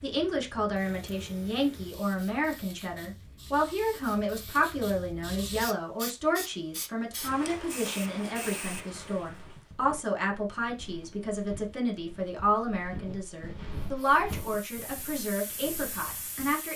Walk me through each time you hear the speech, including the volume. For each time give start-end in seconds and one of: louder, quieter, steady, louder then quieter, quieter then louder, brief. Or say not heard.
0.0-16.7 steady.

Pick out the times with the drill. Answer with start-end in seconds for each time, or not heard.
not heard.